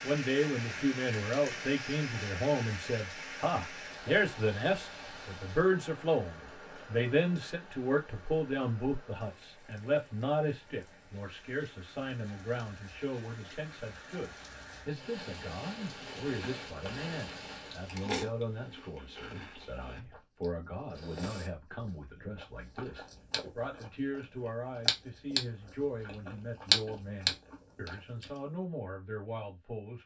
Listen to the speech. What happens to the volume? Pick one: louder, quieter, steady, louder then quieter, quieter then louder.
quieter.